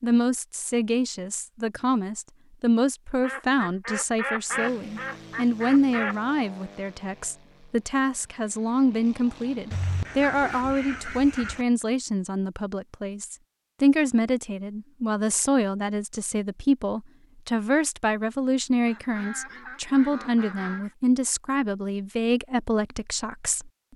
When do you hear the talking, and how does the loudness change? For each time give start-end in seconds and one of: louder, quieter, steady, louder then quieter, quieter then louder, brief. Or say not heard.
0.0-23.9 steady.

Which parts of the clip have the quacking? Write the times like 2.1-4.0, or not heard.
3.2-6.2, 9.7-11.7, 18.9-20.9.